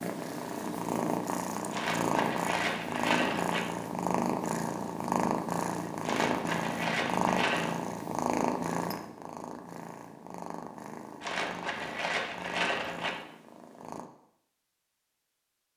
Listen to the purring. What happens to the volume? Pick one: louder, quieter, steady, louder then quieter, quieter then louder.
quieter.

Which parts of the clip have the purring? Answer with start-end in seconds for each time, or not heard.
0.0-14.1.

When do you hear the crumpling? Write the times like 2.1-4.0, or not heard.
1.7-3.6, 6.0-7.8, 11.2-13.1.